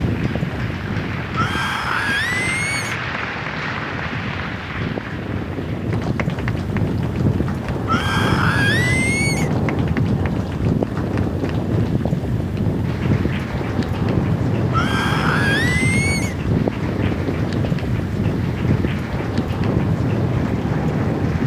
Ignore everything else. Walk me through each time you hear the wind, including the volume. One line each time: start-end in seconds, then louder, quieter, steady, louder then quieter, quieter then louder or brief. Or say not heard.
0.0-21.4 louder.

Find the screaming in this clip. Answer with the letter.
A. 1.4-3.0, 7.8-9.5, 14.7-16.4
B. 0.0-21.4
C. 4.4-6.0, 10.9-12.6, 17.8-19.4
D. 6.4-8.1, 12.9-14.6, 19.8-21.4
A.